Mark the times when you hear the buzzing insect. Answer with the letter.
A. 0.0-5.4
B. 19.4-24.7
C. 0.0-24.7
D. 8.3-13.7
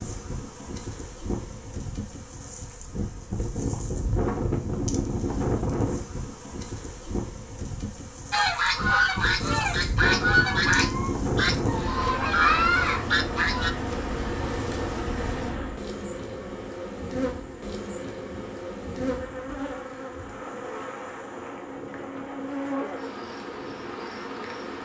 C.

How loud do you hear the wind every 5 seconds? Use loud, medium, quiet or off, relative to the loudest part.
loud, loud, loud, medium, medium.